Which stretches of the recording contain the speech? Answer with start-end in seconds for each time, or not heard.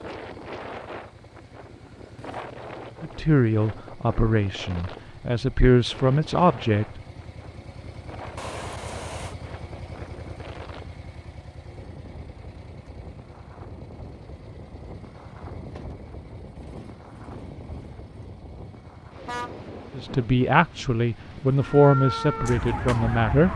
3.0-7.0, 19.9-23.5.